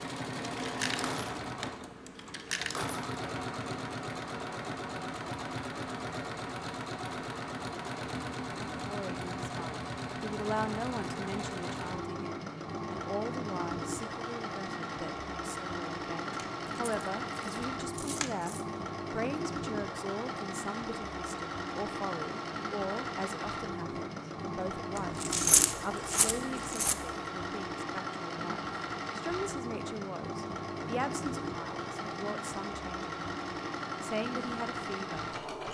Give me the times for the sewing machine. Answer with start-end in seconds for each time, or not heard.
0.0-35.6.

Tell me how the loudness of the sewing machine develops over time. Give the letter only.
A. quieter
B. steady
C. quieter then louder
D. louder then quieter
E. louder
B.